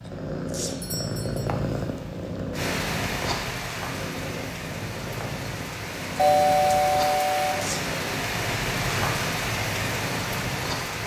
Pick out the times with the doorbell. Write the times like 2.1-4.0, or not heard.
0.7-1.5, 6.2-7.5.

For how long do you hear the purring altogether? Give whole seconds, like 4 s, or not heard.
11 s.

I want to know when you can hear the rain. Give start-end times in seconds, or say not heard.
2.5-11.0.